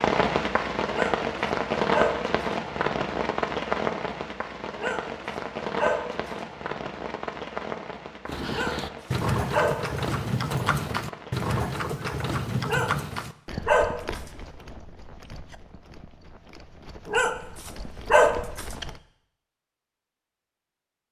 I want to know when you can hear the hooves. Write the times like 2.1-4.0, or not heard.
8.2-19.0.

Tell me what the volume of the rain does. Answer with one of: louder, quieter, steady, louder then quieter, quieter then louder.
quieter.